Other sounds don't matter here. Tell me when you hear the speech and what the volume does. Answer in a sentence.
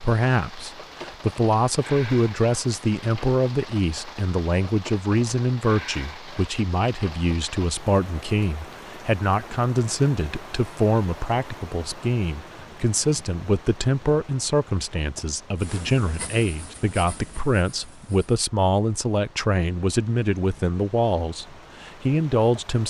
The speech can be heard from 0.0 to 22.8 s, at a steady volume.